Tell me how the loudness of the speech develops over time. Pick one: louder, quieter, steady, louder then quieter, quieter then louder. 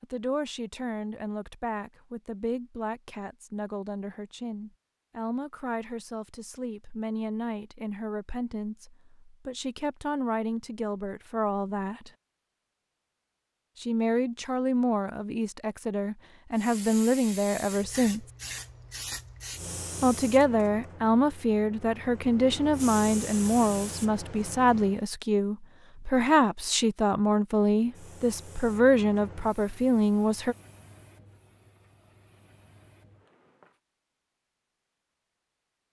louder.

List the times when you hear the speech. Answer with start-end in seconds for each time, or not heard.
0.0-12.1, 13.8-18.2, 20.0-30.6.